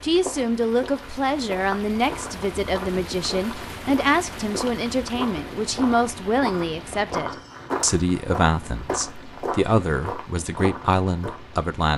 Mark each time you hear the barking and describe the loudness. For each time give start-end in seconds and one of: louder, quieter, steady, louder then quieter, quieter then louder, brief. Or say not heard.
not heard.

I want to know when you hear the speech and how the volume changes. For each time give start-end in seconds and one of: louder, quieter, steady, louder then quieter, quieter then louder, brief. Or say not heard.
0.0-11.9 steady.